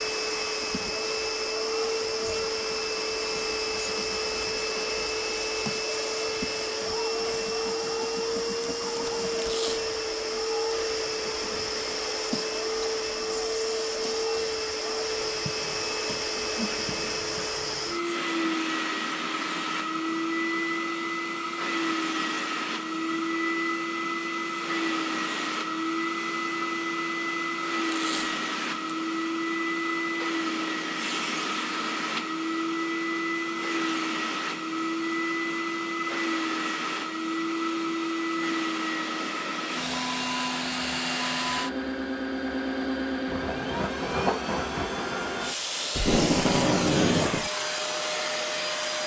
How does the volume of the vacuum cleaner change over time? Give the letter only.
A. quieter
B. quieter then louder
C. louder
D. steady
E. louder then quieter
D.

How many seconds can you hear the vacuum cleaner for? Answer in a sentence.
The vacuum cleaner can be heard for 49 seconds in total.